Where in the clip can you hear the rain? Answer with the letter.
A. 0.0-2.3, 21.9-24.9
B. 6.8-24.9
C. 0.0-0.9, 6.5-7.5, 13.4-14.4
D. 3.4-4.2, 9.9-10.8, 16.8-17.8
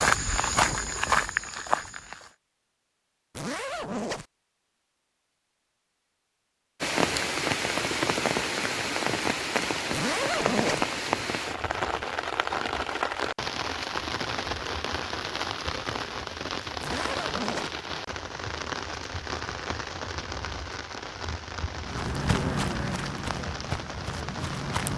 B.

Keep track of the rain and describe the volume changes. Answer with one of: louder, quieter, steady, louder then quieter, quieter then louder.
quieter.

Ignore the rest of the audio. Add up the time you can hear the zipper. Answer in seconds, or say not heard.
3 s.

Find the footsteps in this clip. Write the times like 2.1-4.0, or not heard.
0.0-2.3, 21.9-24.9.